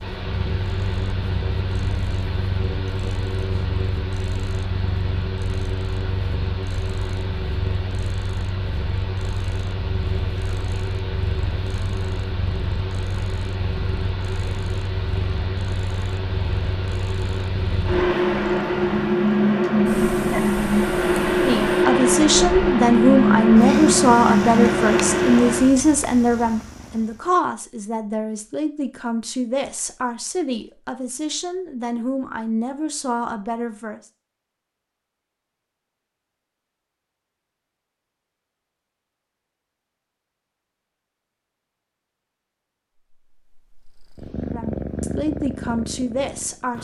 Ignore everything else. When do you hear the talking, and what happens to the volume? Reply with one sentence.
The talking can be heard from 21.4 to 34.0 s, getting quieter; and briefly from 44.5 to 46.7 s.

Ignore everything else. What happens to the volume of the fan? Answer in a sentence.
The loudness of the fan goes up.